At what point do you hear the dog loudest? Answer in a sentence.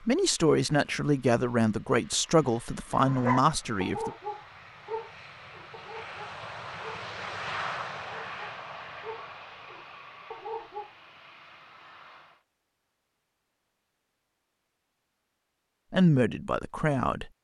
The loudest moment of the dog is at 3 seconds.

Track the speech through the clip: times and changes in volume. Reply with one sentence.
The speech can be heard from 0.1 to 4.1 s, at a steady volume; and briefly from 15.9 to 17.3 s.